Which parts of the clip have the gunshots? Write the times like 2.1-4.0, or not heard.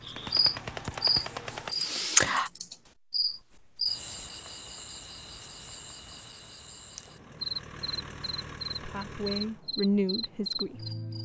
0.1-1.8.